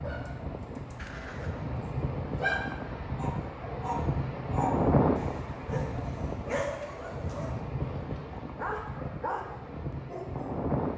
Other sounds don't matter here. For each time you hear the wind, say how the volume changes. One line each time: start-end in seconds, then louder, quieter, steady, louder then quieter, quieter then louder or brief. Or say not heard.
0.0-10.9 louder then quieter.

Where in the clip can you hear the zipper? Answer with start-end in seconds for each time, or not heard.
0.9-1.7.